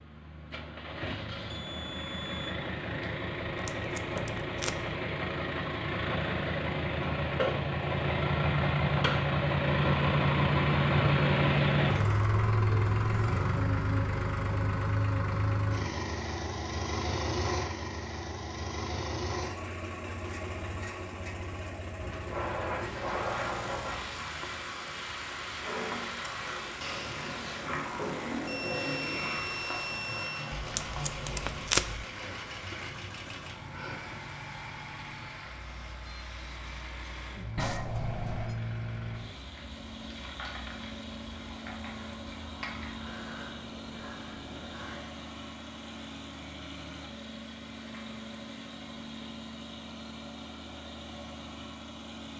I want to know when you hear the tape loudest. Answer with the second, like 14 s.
32 s.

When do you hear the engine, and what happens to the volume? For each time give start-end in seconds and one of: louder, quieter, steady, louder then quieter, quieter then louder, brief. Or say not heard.
0.0-52.3 quieter.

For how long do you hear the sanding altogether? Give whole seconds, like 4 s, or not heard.
not heard.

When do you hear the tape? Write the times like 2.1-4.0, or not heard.
3.5-5.0, 30.6-32.0.